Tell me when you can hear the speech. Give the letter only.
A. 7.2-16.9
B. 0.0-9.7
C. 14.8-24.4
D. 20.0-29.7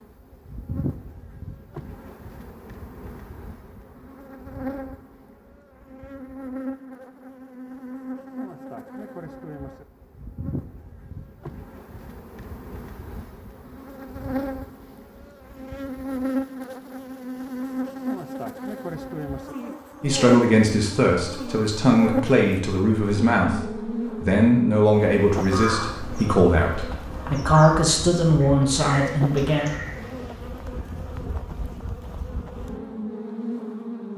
D.